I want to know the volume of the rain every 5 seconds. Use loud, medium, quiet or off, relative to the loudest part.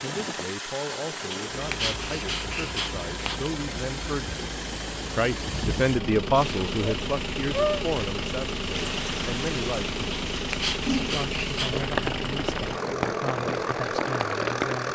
off, loud, loud.